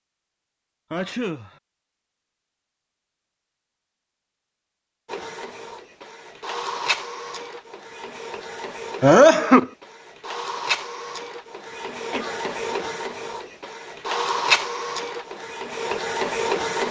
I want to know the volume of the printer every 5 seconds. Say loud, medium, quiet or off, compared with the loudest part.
off, medium, loud, loud.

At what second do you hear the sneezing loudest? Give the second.
9 s.